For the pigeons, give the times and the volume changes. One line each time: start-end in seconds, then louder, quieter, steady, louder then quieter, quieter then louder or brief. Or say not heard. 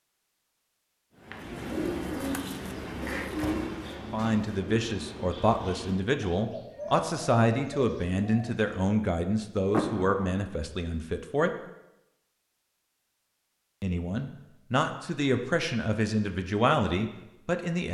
1.2-8.8 quieter.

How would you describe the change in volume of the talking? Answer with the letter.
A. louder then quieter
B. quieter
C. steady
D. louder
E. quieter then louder
C.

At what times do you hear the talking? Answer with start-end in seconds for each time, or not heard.
4.1-11.5, 13.8-17.8.